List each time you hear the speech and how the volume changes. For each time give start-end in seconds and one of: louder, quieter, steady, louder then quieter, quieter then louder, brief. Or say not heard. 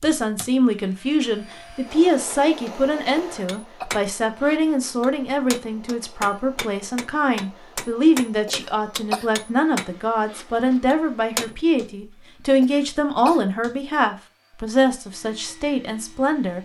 0.0-16.6 steady.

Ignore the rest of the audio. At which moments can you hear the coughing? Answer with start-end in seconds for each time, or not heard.
3.1-3.9, 8.4-9.2, 12.6-13.4.